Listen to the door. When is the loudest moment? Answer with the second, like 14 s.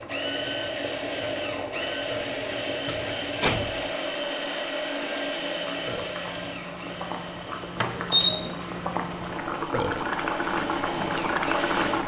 8 s.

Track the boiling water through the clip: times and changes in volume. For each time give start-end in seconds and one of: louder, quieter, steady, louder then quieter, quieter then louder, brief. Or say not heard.
0.0-12.0 louder.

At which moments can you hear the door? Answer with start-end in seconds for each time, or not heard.
2.4-3.8, 7.8-8.6.